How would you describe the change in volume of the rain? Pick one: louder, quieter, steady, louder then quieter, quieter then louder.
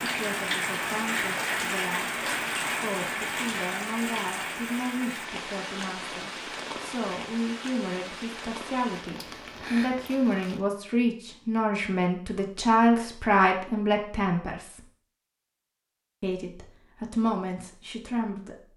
quieter.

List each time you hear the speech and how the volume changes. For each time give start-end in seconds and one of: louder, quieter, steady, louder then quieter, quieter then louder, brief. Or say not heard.
0.0-14.8 louder
16.2-18.7 brief.